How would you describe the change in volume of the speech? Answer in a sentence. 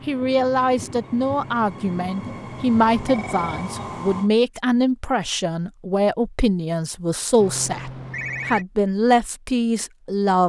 The volume of the speech stays about the same.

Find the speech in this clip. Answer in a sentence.
The speech can be heard from 0.1 to 10.4 s.